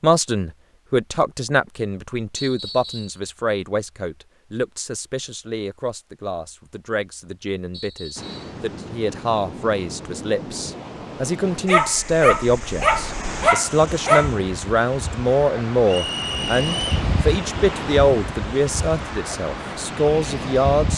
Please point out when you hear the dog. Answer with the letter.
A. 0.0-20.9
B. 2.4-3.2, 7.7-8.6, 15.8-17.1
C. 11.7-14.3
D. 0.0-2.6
C.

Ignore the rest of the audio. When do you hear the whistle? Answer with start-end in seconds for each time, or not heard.
2.4-3.2, 7.7-8.6, 15.8-17.1.